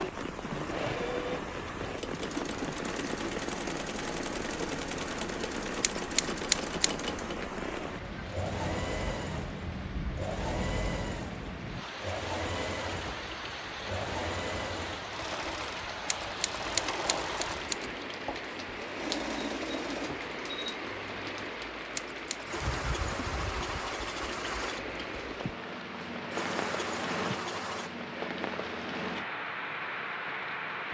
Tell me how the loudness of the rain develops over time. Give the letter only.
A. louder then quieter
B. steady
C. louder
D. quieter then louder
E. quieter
B.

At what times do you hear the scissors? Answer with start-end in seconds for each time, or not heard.
5.8-6.9, 16.1-17.9, 21.9-22.4.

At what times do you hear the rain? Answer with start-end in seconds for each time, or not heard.
0.0-30.8.